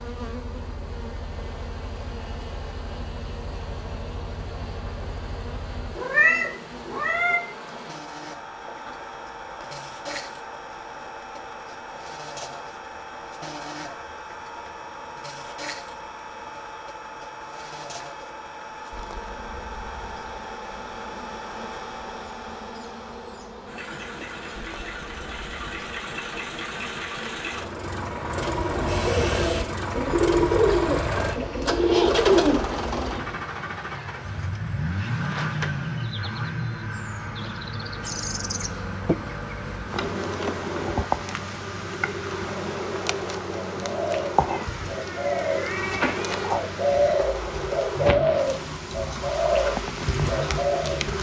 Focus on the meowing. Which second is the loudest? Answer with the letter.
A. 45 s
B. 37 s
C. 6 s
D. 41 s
C.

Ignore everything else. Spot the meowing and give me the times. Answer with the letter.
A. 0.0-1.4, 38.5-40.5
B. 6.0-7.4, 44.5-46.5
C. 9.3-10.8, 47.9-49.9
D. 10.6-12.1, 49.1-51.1
B.